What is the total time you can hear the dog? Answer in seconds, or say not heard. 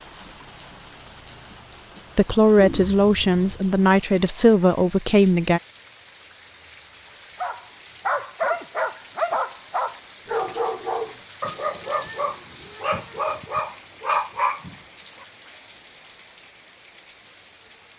8 s.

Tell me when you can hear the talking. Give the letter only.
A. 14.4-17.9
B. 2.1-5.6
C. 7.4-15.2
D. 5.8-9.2
B.